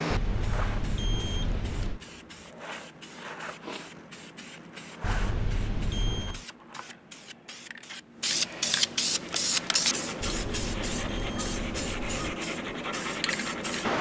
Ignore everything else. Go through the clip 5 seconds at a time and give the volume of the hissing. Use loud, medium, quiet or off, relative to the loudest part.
medium, loud, loud.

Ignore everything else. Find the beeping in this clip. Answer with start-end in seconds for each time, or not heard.
0.1-2.0, 5.0-6.5, 10.2-12.2.